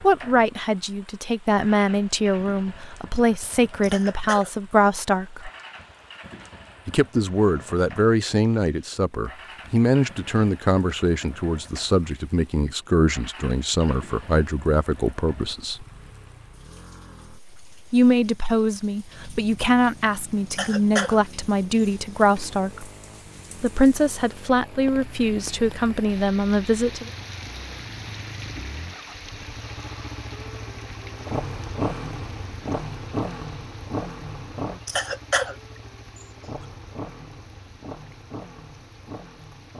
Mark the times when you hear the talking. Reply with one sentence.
You can hear the talking from 0.0 to 5.5 s, from 6.8 to 15.8 s, from 17.9 to 22.9 s and from 23.6 to 27.1 s.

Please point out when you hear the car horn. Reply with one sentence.
The car horn can't be heard in this clip.